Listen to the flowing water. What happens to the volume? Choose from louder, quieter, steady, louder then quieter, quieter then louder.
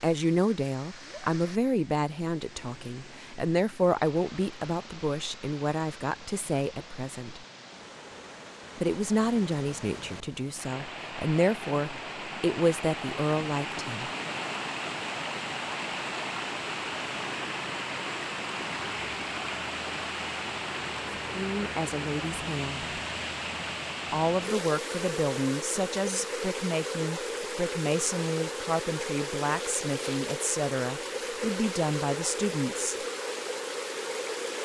louder.